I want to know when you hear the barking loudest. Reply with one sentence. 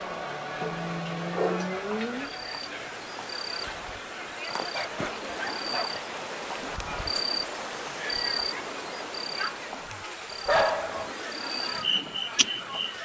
The volume of the barking peaks at 11 seconds.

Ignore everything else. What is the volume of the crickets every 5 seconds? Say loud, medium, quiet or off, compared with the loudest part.
medium, loud, loud.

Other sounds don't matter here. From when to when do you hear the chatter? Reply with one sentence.
The chatter can be heard from 0.0 to 13.0 s.